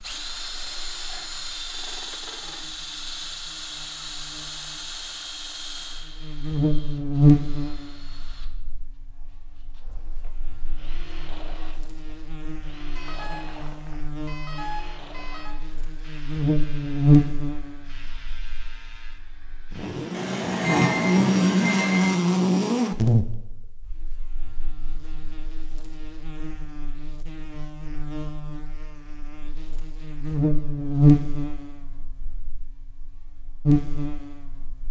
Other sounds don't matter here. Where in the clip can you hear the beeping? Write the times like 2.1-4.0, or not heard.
12.9-15.6, 20.1-22.1.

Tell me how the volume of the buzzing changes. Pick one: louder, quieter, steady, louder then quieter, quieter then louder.
quieter then louder.